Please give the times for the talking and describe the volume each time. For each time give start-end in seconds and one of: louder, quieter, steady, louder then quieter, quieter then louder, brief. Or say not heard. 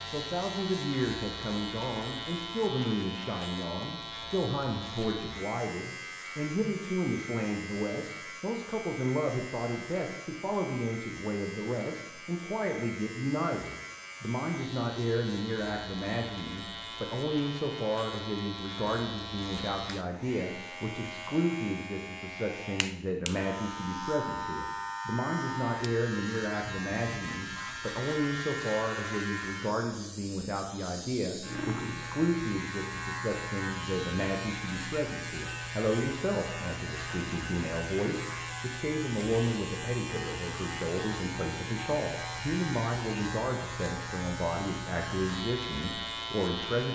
0.0-46.9 steady.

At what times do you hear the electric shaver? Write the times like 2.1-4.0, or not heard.
0.0-46.9.